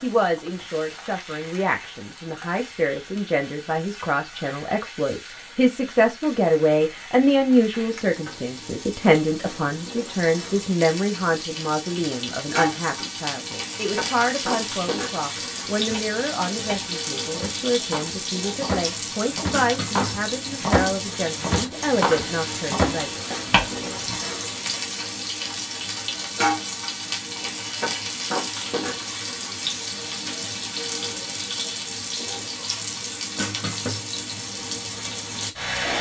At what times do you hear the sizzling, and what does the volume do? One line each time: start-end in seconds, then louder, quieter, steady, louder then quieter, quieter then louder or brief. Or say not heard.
0.0-35.9 louder.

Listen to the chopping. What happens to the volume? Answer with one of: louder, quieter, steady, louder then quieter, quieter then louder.
louder.